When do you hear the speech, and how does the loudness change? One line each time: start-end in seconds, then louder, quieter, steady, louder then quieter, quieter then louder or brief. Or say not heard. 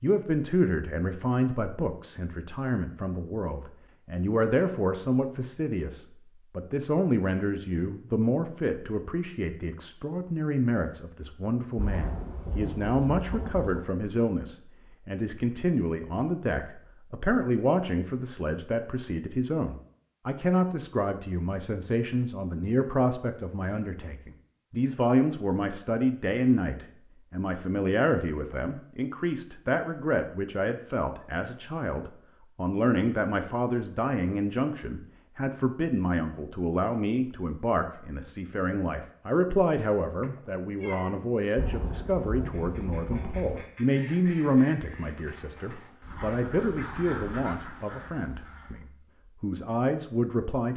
0.0-50.7 steady.